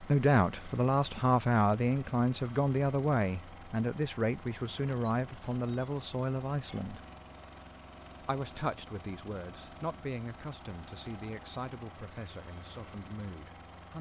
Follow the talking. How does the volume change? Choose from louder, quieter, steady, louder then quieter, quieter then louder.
quieter.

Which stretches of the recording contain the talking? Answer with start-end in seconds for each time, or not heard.
0.0-7.0, 8.2-13.9.